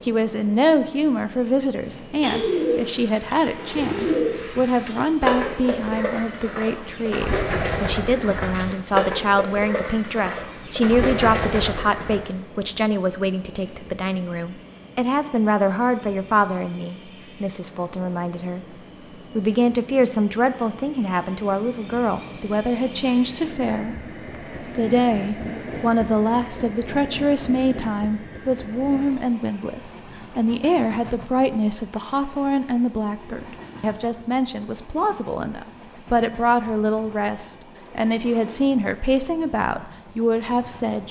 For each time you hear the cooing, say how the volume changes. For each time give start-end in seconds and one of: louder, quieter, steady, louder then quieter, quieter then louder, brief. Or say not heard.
1.9-12.3 steady.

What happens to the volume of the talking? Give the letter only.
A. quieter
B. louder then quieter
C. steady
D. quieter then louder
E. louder
C.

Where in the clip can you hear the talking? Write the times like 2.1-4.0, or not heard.
0.0-18.8, 19.4-24.1, 24.8-41.0.